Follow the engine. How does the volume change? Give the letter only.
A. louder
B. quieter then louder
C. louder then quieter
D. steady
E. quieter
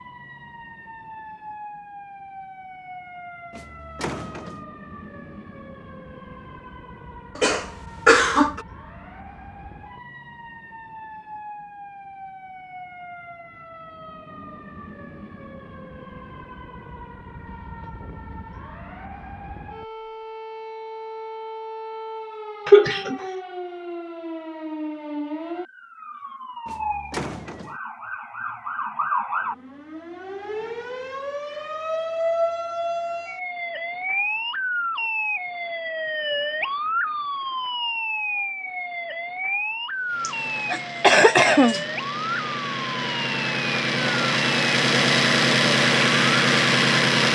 A.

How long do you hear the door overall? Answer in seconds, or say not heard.
2 s.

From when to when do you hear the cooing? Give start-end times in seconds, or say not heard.
not heard.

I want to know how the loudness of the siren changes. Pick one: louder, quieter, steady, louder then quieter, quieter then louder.
louder.